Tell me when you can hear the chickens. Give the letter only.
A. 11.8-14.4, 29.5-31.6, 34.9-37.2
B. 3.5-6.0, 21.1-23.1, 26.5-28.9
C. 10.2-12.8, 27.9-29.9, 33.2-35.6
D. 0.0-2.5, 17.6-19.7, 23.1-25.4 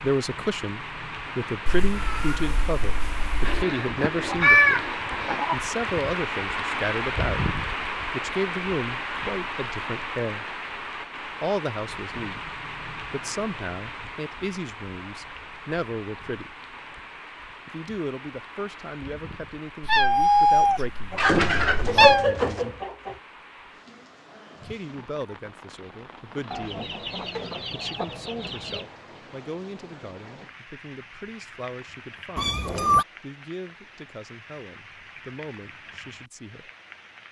B.